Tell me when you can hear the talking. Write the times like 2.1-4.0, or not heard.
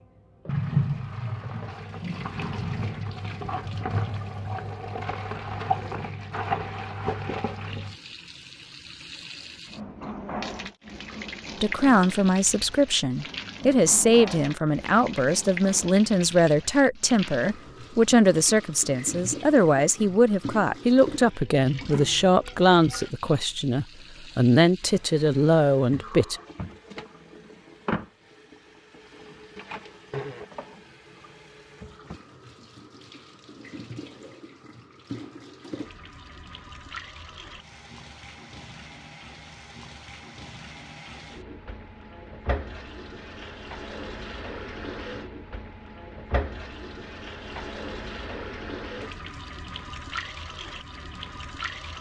11.6-26.4.